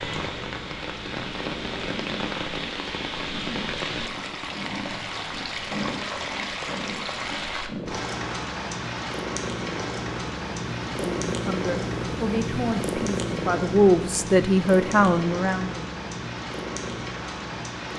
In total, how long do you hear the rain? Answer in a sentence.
The rain can be heard for 18 seconds in total.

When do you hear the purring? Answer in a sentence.
You can hear the purring from 0.0 to 17.9 s.